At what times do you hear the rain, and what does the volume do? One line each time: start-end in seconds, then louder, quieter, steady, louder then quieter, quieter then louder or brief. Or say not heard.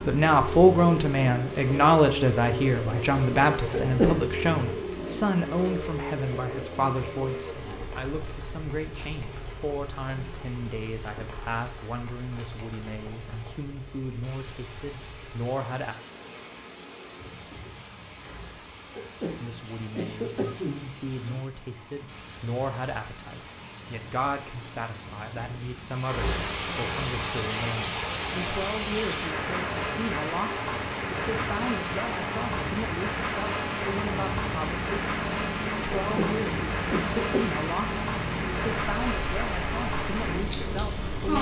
0.0-41.3 louder.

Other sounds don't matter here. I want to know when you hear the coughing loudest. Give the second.
4 s.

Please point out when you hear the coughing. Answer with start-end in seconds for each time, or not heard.
3.7-4.2, 18.9-21.4, 36.0-37.5.